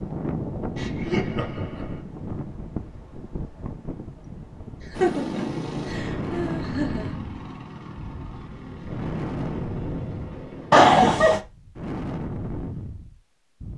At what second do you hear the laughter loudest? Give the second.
11 s.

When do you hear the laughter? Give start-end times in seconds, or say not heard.
0.8-2.0, 4.8-7.2, 10.7-11.4.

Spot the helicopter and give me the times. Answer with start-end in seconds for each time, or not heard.
4.9-10.9.